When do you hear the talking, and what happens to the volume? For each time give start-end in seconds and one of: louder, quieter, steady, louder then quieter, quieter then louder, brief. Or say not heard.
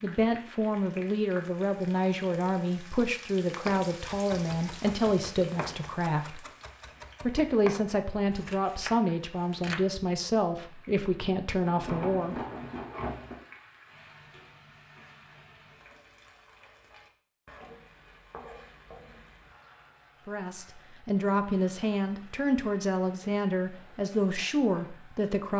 0.0-6.5 steady
7.2-12.4 steady
20.2-25.5 steady.